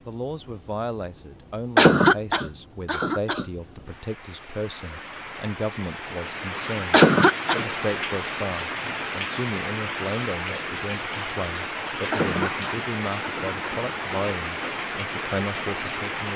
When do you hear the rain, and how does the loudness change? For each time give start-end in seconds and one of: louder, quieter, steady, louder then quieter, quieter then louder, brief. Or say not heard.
0.0-16.3 louder.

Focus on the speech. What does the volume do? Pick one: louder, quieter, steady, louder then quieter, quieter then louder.
steady.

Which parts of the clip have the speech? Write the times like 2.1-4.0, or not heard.
0.1-16.3.